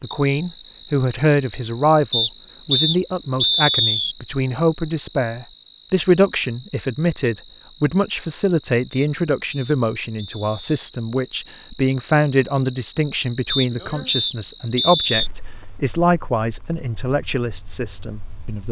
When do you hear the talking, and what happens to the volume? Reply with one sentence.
You can hear the talking from 0.0 to 18.6 s, at a steady volume.